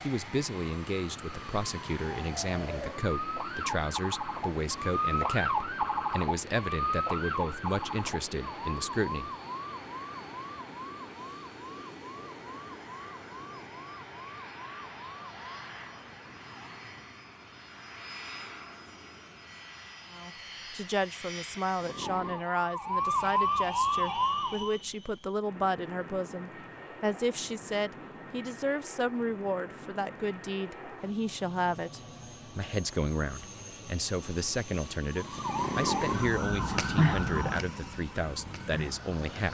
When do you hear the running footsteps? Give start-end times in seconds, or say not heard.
not heard.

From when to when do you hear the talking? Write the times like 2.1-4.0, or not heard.
0.0-9.3, 20.1-39.4.